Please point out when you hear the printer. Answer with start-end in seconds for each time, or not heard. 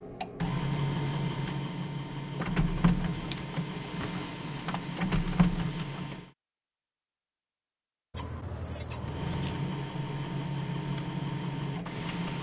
0.0-6.3, 8.9-12.3.